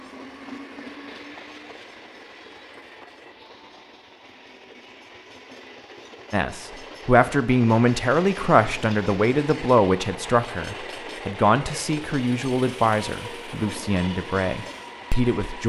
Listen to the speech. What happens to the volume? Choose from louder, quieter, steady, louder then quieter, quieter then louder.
quieter.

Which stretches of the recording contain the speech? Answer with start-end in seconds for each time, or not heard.
6.3-15.6.